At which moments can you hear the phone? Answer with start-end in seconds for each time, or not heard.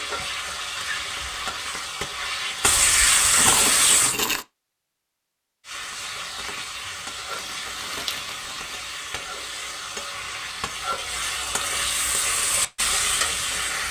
not heard.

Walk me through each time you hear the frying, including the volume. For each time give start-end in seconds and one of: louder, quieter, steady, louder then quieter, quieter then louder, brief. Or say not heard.
0.0-4.2 louder
5.6-13.8 louder.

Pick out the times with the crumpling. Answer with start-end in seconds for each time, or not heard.
3.4-4.5, 7.3-8.8.